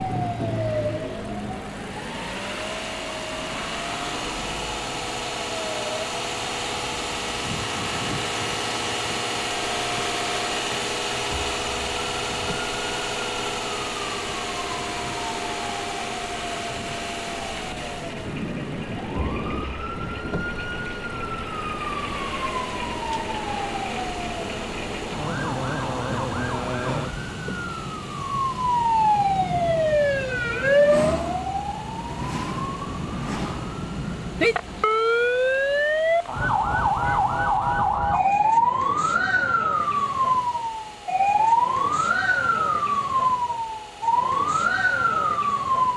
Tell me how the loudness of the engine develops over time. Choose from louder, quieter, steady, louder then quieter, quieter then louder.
quieter.